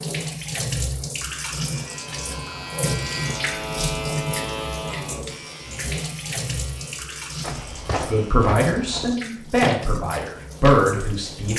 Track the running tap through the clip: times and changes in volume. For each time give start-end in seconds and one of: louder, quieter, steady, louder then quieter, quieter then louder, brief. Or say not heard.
0.0-11.5 quieter.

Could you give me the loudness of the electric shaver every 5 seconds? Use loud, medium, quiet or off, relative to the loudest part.
loud, medium, off.